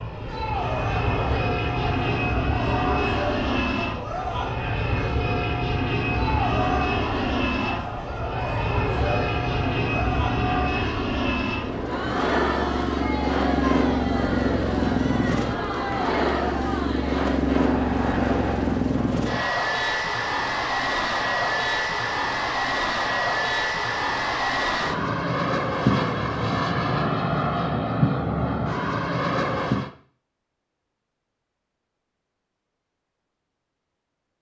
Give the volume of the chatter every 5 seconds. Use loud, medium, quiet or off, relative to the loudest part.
loud, loud, loud, loud, off, off, off.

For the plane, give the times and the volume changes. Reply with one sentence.
You can hear the plane from 0.0 to 29.9 s, at a steady volume.